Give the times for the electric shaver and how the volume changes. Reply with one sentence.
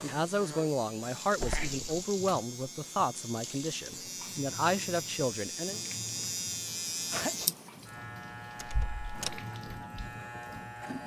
You can hear the electric shaver from 0.0 to 11.0 s, getting louder then quieter.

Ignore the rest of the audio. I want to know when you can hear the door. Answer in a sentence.
You can hear the door from 1.4 to 2.0 s and from 8.6 to 9.4 s.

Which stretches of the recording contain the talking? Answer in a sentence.
The talking can be heard from 0.0 to 5.8 s.